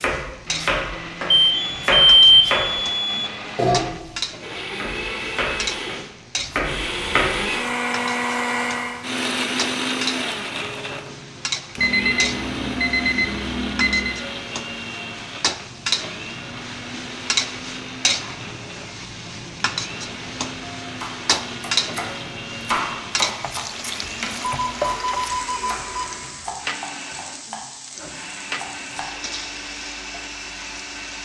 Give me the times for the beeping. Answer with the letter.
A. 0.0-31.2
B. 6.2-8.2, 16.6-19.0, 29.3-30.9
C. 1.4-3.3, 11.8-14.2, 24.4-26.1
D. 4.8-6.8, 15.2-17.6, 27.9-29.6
C.